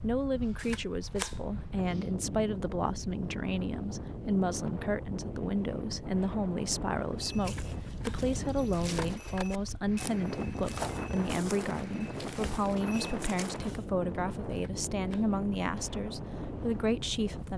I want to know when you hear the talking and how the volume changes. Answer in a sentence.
The talking can be heard from 0.0 to 17.5 s, at a steady volume.